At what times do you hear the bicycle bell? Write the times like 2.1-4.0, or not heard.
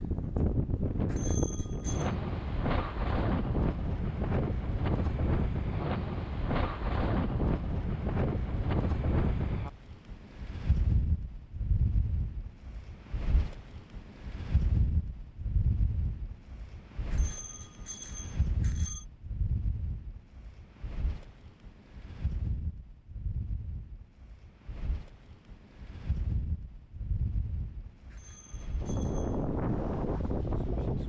1.1-2.1, 17.1-19.1, 28.1-29.4.